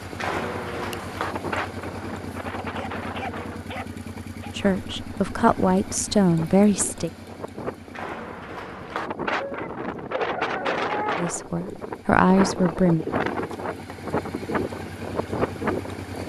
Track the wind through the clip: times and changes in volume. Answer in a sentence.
You can hear the wind from 0.0 to 16.2 s, getting quieter then louder.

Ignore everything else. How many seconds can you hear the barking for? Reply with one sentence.
You can hear the barking for 4 seconds altogether.